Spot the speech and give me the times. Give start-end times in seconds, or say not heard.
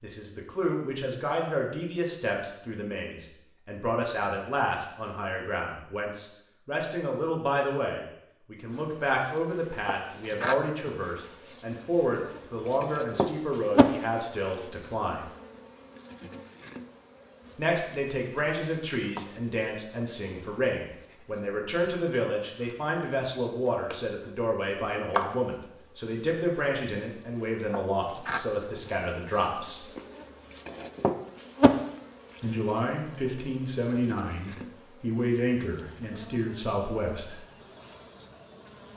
0.0-15.2, 17.6-29.9, 32.4-37.5.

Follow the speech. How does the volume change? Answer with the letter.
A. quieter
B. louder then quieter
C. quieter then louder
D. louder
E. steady
E.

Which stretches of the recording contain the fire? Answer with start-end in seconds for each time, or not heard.
not heard.